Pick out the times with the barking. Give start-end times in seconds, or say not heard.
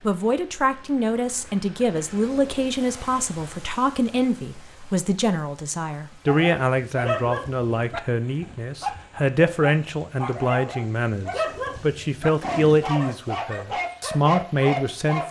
6.2-15.2.